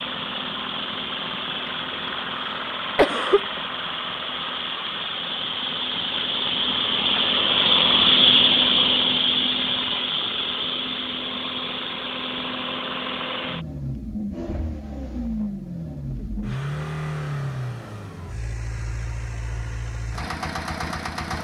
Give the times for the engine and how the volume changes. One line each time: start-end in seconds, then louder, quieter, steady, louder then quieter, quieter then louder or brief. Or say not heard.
0.0-21.4 louder then quieter.